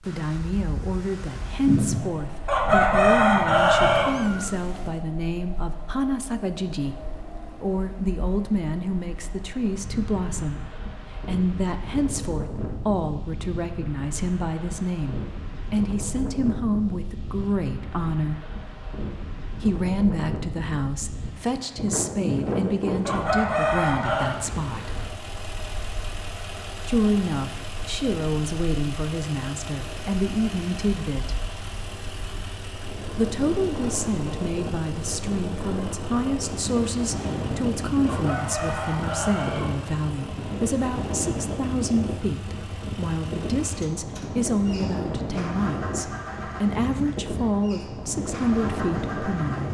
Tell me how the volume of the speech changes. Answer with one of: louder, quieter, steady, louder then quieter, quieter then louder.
steady.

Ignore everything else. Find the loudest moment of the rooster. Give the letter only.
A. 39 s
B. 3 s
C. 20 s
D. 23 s
B.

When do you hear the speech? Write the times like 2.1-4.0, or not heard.
0.0-18.4, 19.6-24.9, 26.9-31.4, 33.1-49.6.